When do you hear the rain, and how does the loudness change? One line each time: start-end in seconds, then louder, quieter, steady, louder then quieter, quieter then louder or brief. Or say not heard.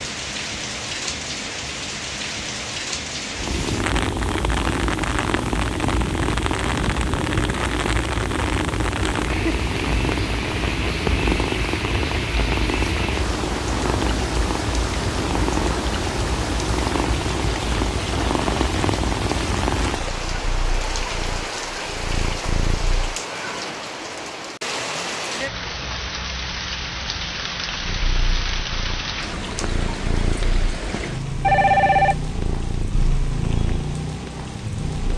0.0-35.1 steady.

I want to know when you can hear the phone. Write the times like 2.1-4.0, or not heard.
31.4-32.1.